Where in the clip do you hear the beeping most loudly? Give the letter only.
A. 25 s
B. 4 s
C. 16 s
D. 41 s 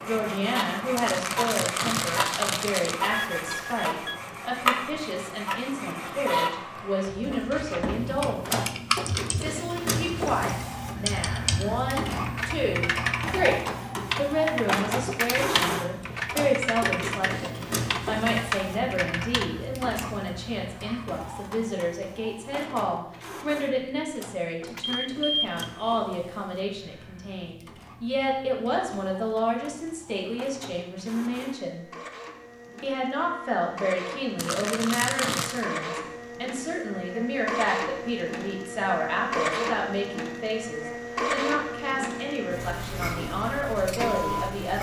A.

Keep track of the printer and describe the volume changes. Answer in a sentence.
The volume of the printer goes down, then up.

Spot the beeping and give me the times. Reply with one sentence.
The beeping can be heard from 3.0 to 4.2 s and from 24.6 to 26.0 s.